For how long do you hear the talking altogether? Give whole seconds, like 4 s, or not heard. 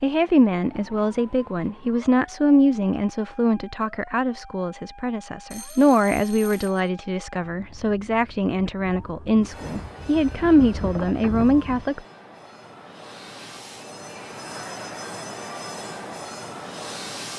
12 s.